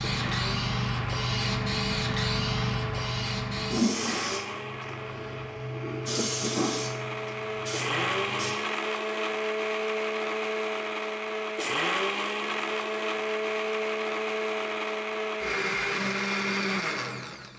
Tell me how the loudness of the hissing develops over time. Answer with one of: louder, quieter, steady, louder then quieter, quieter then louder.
quieter.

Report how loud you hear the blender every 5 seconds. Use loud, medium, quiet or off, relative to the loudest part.
medium, loud, loud, loud.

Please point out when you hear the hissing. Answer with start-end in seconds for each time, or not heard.
0.0-8.6.